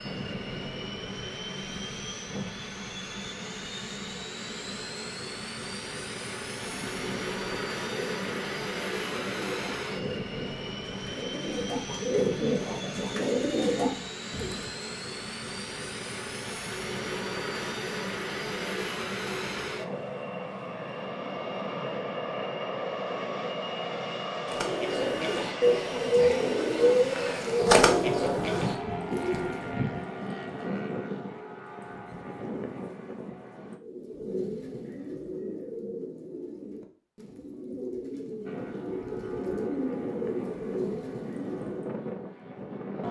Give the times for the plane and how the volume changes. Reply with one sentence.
The plane can be heard from 0.0 to 33.8 s, at a steady volume; and from 38.5 to 43.0 s, getting louder.